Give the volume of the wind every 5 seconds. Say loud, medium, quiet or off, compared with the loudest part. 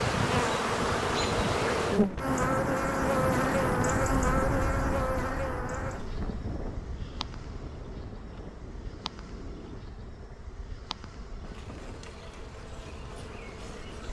loud, medium, quiet.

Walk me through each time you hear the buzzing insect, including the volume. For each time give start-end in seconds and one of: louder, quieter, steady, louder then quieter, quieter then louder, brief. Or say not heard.
0.0-14.0 quieter.